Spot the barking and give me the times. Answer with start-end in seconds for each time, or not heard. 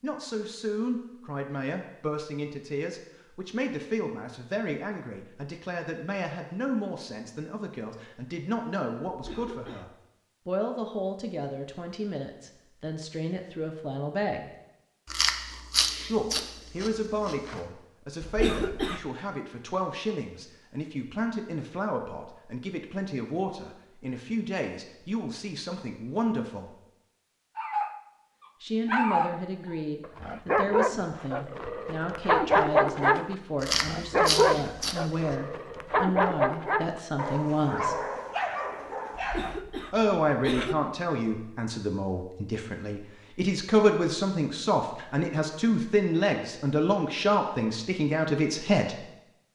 27.6-39.6.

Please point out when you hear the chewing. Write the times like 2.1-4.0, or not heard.
15.1-17.6, 33.6-35.4.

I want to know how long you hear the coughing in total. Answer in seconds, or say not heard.
3 s.